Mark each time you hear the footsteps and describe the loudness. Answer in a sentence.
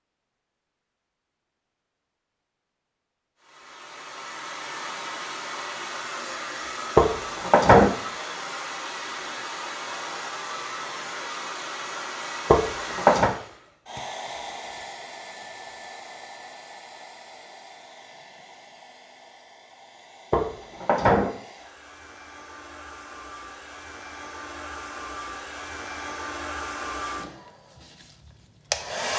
You can't hear the footsteps here.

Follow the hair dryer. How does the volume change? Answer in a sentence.
The loudness of the hair dryer goes down, then up.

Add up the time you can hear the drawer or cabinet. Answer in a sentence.
You can hear the drawer or cabinet for 3 seconds altogether.